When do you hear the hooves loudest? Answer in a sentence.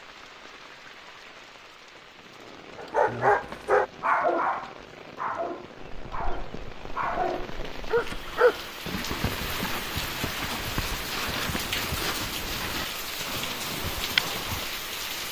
The volume of the hooves peaks at 14 seconds.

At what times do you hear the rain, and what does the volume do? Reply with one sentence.
You can hear the rain from 0.0 to 15.2 s, getting louder.